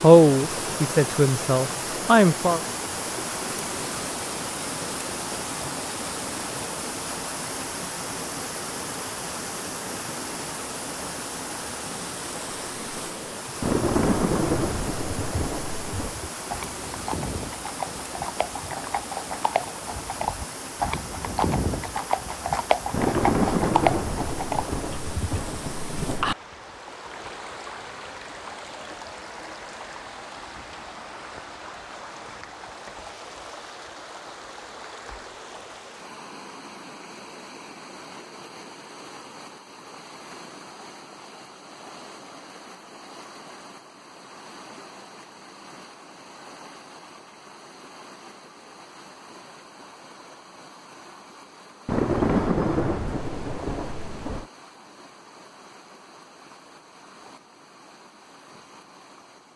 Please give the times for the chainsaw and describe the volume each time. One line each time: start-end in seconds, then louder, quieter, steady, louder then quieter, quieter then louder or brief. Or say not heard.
not heard.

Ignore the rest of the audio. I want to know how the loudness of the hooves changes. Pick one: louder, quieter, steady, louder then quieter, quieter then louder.
louder.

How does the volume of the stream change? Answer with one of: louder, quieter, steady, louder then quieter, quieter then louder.
quieter.